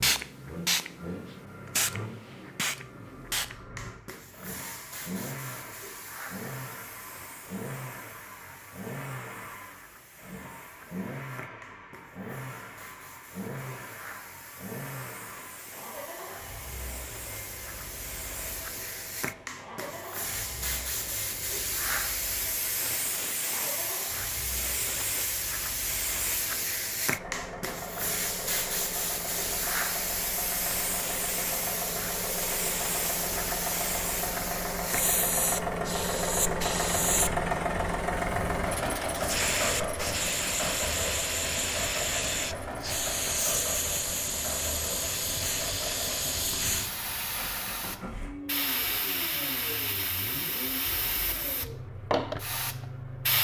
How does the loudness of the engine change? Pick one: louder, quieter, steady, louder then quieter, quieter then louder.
louder then quieter.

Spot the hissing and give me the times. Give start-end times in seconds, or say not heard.
0.0-53.3.